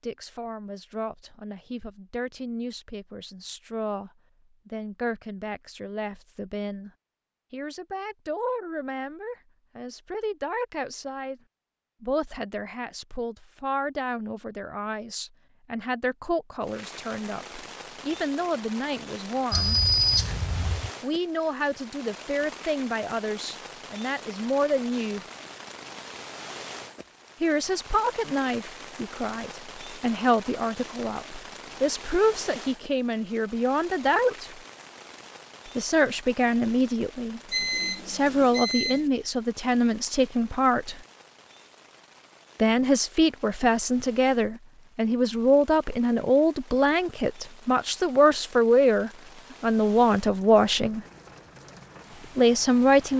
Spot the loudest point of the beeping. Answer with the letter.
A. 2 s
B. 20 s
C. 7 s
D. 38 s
B.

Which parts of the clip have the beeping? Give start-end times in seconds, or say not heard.
19.5-20.9, 37.5-39.1.